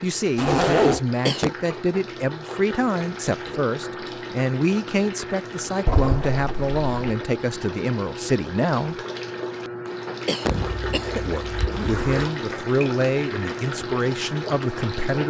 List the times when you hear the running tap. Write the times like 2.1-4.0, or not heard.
0.0-15.2.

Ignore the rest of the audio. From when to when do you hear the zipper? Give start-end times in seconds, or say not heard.
0.3-1.0, 5.8-7.0, 10.6-12.3.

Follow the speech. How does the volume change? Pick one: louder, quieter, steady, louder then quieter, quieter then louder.
steady.